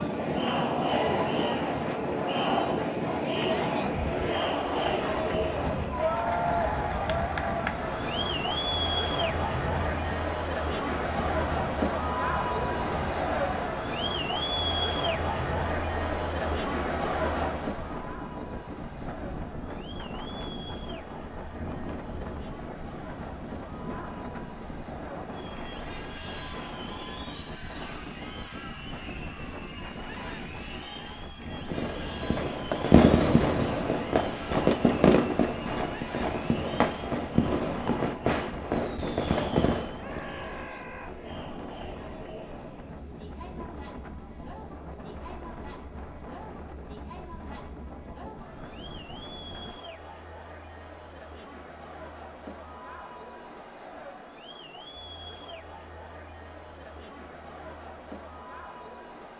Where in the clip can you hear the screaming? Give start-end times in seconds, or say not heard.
40.0-41.1.